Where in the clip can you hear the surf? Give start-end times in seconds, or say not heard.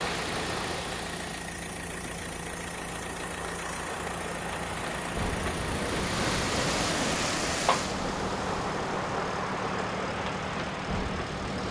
0.0-11.6.